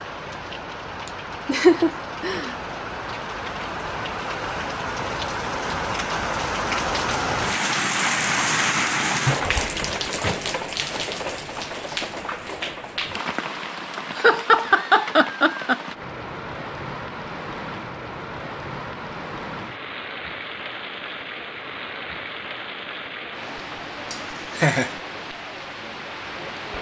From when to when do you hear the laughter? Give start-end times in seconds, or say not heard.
1.1-2.5, 14.2-15.8, 24.1-24.9.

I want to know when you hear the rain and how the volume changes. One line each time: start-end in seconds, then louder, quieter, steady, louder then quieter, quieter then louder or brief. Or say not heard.
0.0-26.7 louder then quieter.